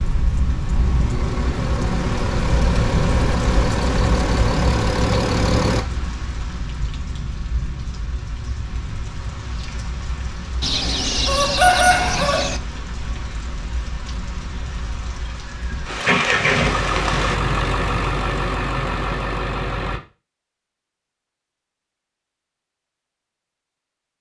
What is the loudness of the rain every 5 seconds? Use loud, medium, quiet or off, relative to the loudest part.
loud, medium, medium, loud, off.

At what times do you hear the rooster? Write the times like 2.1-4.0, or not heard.
10.6-12.6.